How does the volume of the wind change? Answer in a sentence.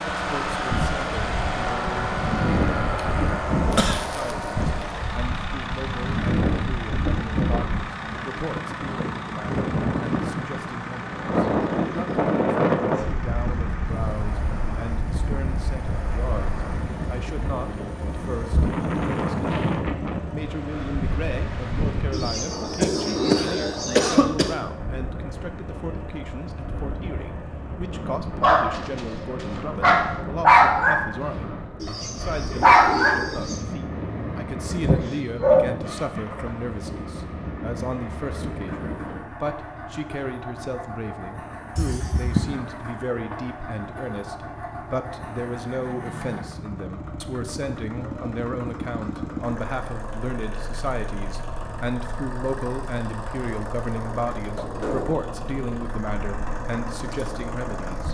The volume of the wind goes down.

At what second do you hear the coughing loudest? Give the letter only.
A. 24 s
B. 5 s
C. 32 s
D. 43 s
A.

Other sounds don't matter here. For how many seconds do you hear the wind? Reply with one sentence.
The wind can be heard for 39 seconds in total.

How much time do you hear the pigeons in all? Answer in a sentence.
The pigeons can be heard for 4 seconds in total.